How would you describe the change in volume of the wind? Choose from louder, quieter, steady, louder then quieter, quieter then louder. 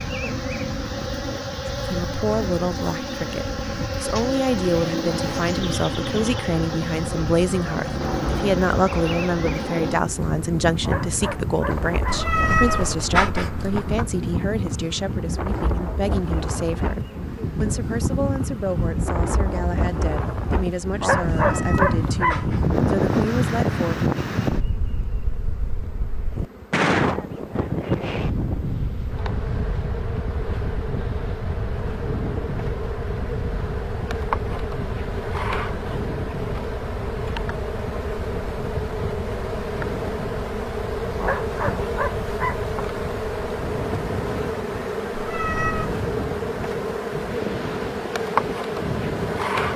louder then quieter.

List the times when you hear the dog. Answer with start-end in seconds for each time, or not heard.
10.8-12.3, 21.0-22.4, 41.2-42.6.